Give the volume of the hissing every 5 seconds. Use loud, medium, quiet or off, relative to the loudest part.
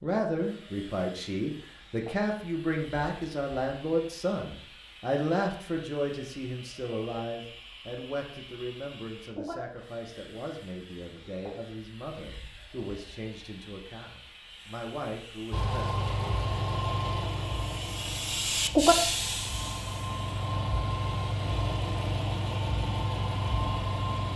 quiet, quiet, quiet, loud, quiet.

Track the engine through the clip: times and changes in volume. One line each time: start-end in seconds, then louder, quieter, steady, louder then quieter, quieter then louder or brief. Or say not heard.
15.5-24.3 quieter then louder.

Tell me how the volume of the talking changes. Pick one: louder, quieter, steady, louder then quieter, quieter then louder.
quieter.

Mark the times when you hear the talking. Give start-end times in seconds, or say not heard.
0.0-16.0.